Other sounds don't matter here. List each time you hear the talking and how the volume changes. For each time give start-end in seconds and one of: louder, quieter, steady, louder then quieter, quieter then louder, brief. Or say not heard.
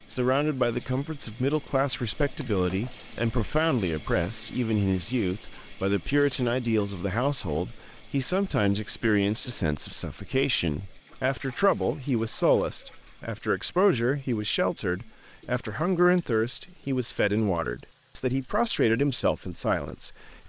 0.1-20.4 steady.